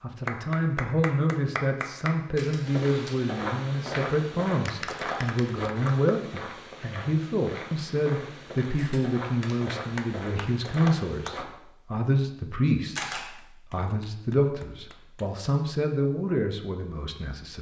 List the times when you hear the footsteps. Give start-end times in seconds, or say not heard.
2.6-11.4.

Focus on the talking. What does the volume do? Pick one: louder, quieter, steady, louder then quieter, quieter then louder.
steady.